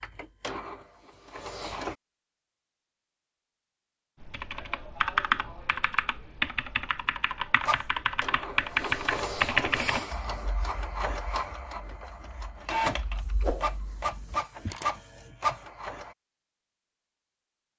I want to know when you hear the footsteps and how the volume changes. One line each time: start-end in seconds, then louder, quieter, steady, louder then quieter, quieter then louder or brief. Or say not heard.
not heard.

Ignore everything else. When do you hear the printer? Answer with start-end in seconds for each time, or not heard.
0.0-1.9, 7.7-16.1.